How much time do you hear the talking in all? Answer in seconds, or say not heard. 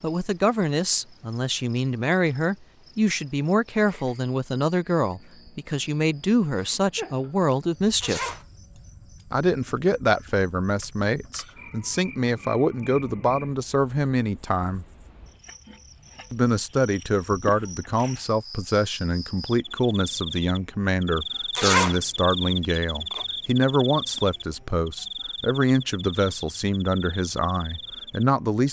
26 s.